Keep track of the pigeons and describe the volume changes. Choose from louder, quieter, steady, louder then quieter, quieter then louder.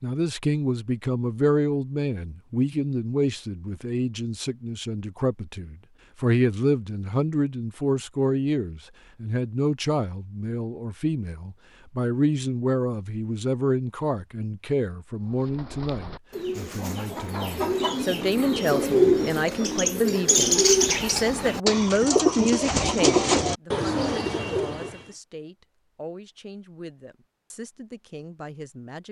louder.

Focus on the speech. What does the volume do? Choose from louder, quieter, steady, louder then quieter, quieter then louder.
quieter.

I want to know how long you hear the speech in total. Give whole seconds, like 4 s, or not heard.
29 s.